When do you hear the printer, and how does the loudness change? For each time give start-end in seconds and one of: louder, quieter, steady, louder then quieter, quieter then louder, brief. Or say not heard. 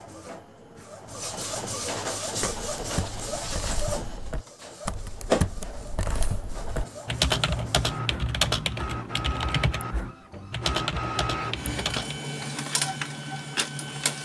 0.0-14.2 quieter then louder.